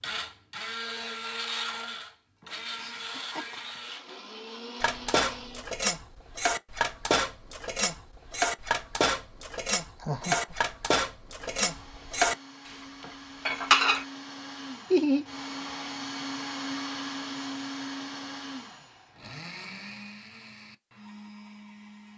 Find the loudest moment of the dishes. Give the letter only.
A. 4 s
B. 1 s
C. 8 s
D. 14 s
D.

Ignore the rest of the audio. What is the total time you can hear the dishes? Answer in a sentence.
You can hear the dishes for 9 seconds altogether.